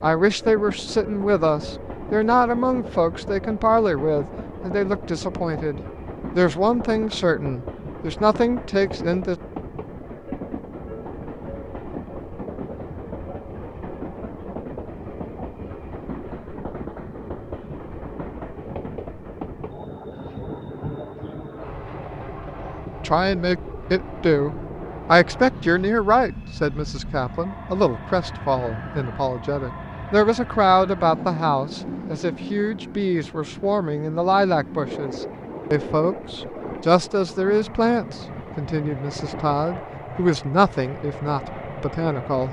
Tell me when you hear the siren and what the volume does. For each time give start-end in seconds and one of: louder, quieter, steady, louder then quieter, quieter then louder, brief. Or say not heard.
not heard.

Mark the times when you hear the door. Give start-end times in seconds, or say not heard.
not heard.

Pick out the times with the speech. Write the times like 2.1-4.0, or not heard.
0.0-9.3, 23.1-42.4.